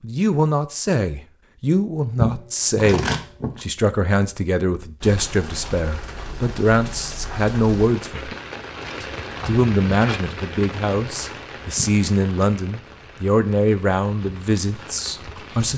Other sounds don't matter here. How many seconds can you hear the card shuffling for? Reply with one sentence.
You can hear the card shuffling for 2 seconds altogether.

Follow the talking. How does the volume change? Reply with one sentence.
The volume of the talking stays about the same.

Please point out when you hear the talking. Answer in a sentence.
You can hear the talking from 0.0 to 8.3 s and from 9.0 to 15.7 s.